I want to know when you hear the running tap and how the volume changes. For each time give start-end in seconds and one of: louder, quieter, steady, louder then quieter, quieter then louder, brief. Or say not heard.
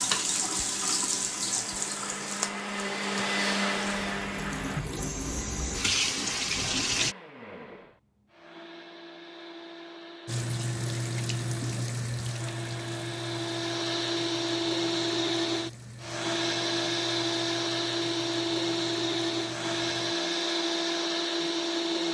0.0-7.2 quieter then louder
10.2-20.1 quieter.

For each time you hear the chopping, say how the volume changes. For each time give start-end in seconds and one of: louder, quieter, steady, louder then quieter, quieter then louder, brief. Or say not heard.
not heard.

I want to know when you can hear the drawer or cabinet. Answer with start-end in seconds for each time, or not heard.
not heard.